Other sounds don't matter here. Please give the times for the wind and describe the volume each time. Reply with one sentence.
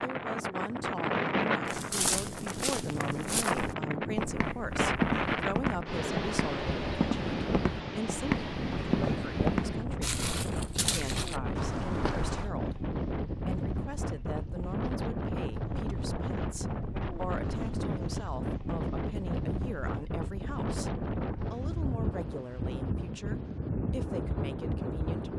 The wind can be heard from 0.0 to 25.3 s, at a steady volume.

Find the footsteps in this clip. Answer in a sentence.
You can hear the footsteps from 1.6 to 12.5 s.